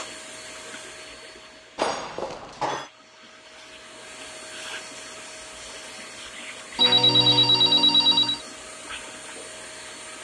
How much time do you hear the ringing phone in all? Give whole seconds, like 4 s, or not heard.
3 s.